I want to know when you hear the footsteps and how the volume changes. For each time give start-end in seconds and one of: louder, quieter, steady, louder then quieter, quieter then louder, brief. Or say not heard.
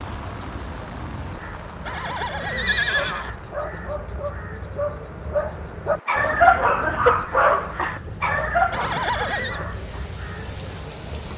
not heard.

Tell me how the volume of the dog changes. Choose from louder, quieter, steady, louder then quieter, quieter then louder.
louder then quieter.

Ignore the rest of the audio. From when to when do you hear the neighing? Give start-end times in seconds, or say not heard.
1.9-3.3, 8.7-9.6.